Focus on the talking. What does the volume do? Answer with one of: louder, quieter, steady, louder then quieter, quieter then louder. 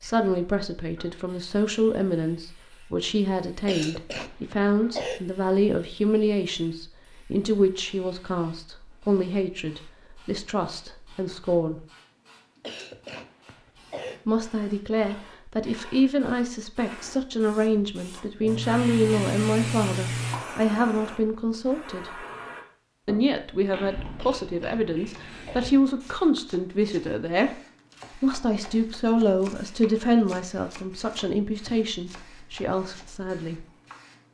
steady.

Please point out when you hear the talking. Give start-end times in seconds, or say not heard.
0.0-11.8, 14.2-22.1, 23.1-27.5, 28.1-33.6.